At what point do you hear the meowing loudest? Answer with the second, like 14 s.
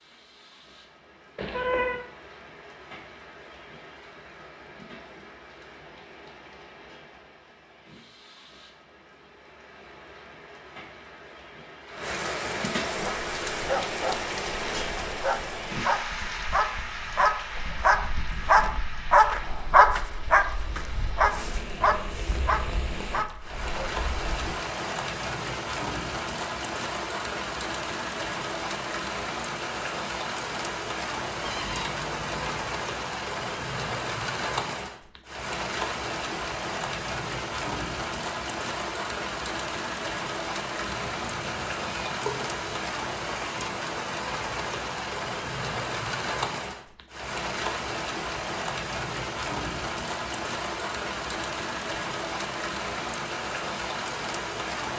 2 s.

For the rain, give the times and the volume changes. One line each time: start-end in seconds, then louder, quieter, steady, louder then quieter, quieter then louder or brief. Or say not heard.
0.0-54.9 louder.